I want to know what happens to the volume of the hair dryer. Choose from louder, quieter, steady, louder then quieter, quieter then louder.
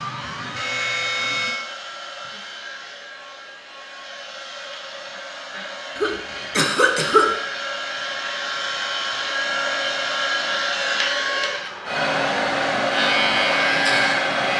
louder.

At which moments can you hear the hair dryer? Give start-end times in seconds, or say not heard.
0.0-14.5.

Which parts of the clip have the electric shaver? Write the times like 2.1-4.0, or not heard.
0.0-1.6, 12.9-14.5.